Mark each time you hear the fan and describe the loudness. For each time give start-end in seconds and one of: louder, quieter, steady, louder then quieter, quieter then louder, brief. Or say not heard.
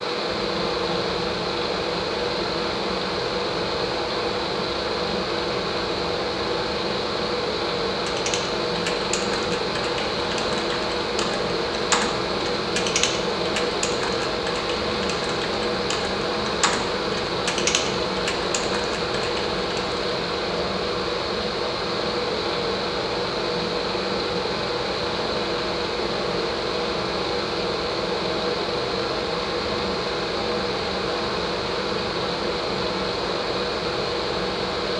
0.0-34.9 steady.